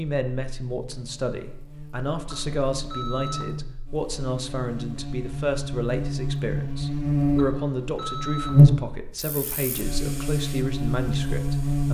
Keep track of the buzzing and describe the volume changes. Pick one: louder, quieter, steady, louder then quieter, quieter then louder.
louder then quieter.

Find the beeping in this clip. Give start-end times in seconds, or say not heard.
2.3-3.5, 7.3-8.6.